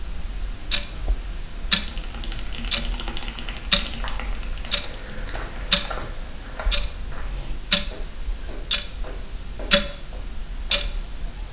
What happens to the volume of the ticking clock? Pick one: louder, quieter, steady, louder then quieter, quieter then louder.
steady.